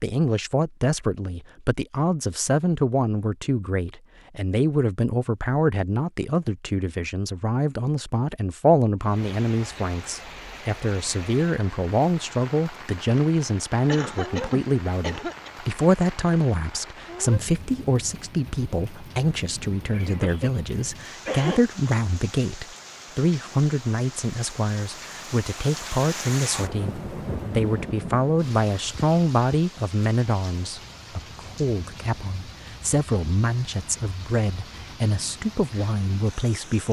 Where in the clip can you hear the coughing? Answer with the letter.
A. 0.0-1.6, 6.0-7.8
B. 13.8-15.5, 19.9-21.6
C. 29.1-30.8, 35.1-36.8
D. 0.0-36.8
B.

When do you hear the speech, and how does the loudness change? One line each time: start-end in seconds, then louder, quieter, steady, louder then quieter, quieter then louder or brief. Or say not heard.
0.0-36.8 steady.